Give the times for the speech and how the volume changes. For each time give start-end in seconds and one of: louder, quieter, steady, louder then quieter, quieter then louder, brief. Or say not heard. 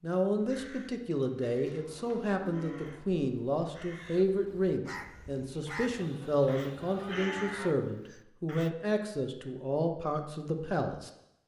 0.0-11.1 steady.